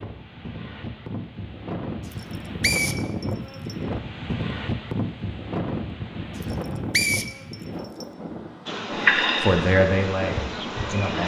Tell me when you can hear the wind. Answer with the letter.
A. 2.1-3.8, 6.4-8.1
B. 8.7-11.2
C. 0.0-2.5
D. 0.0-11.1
D.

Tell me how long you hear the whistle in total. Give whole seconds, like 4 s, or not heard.
3 s.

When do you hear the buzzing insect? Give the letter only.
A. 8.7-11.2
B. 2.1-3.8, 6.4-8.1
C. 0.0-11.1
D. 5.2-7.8
A.